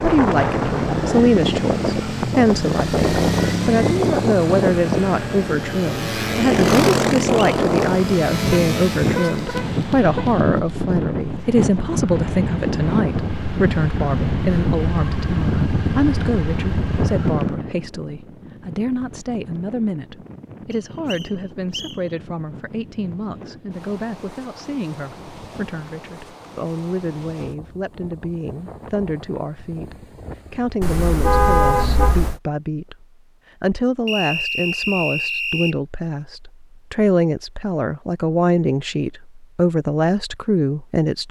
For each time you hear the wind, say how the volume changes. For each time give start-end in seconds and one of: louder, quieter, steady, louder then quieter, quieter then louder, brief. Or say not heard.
0.0-30.8 quieter.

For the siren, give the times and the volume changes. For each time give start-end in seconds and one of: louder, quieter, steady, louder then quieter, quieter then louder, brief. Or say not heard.
not heard.